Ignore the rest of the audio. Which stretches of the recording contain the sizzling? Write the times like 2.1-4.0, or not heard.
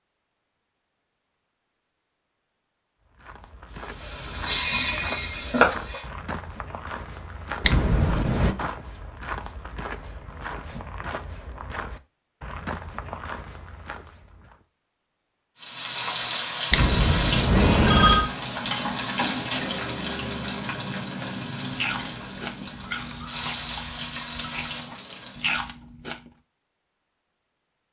3.7-6.0, 15.6-25.7.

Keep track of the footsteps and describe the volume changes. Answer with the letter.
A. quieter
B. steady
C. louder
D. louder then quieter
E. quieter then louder
B.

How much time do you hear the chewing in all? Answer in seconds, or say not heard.
5 s.